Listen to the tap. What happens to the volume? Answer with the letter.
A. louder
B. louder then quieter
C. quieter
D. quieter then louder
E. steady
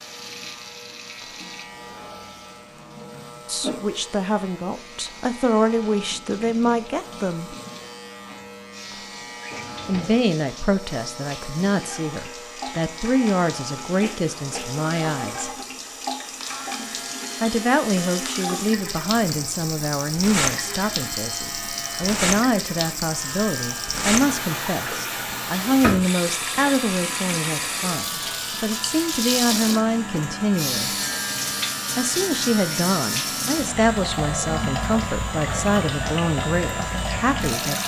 A.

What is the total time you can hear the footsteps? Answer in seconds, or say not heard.
not heard.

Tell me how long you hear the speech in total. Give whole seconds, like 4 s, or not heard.
29 s.